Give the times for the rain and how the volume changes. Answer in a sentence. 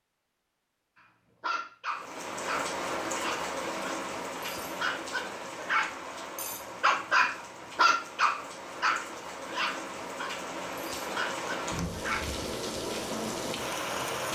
You can hear the rain from 1.9 to 14.2 s, getting quieter then louder.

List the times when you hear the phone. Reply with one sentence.
You can't hear the phone here.